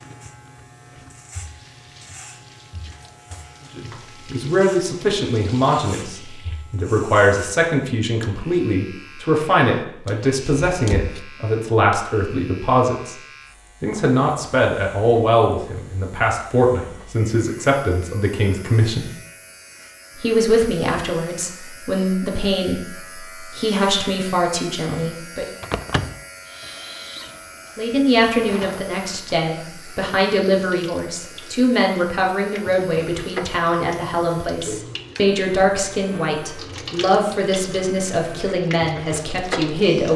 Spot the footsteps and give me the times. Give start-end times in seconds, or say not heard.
not heard.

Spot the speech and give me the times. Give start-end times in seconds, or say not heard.
3.8-13.2, 13.8-19.1, 20.1-25.4, 27.8-40.1.